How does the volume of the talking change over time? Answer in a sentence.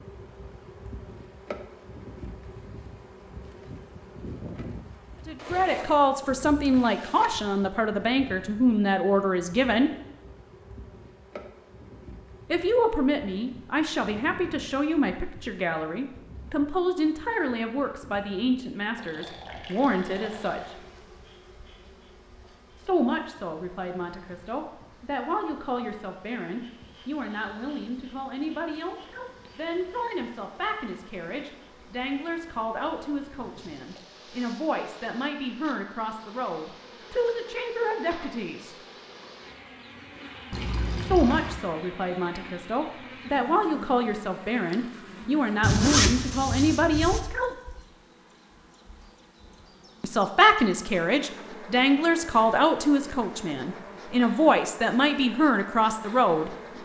The loudness of the talking goes down, then up.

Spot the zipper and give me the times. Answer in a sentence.
You can hear the zipper from 5.3 to 7.3 s and from 45.6 to 47.2 s.